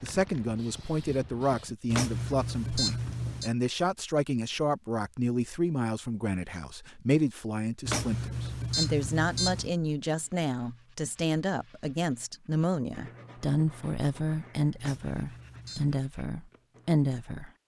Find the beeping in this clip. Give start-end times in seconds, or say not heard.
1.9-3.5, 7.8-9.8, 14.8-16.0.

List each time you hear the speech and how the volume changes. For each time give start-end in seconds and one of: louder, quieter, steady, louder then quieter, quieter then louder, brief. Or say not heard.
0.0-17.5 steady.